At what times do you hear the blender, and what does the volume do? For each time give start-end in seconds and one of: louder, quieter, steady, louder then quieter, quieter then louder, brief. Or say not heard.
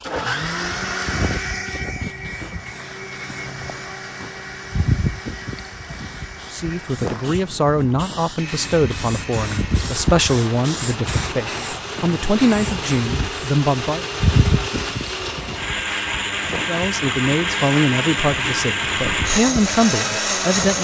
0.0-20.7 quieter then louder.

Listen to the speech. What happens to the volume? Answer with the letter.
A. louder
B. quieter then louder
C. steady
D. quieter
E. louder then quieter
C.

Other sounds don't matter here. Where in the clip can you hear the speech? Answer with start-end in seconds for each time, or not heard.
6.5-14.1, 16.6-20.7.